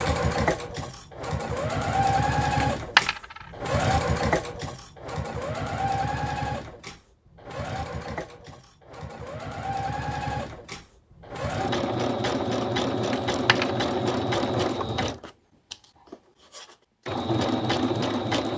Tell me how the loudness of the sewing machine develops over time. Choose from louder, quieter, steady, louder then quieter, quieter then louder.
quieter then louder.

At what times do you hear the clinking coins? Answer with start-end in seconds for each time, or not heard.
2.6-3.5, 13.1-13.8.